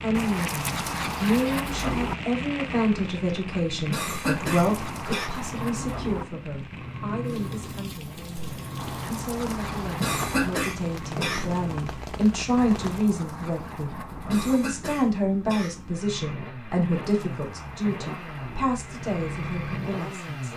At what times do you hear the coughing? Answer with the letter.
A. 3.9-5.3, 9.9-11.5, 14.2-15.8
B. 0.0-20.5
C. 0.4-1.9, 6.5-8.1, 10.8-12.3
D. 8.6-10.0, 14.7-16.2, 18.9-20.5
A.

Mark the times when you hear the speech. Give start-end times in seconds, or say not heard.
0.0-20.5.